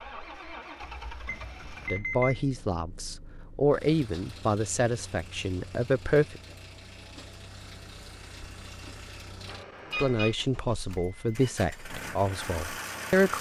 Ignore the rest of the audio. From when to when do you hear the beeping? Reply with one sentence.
The beeping can be heard from 1.2 to 2.5 s and from 9.4 to 10.3 s.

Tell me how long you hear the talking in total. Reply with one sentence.
You can hear the talking for 8 seconds altogether.